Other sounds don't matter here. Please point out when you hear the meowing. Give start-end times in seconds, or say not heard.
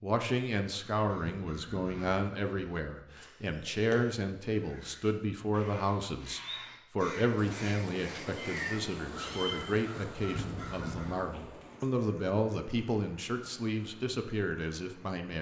8.3-9.6.